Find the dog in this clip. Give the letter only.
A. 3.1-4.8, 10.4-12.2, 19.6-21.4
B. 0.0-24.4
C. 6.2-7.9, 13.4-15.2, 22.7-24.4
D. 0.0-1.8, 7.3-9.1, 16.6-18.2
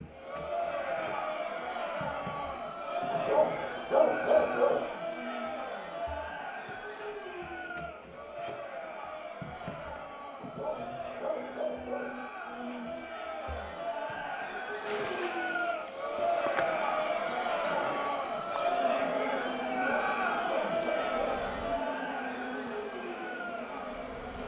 A.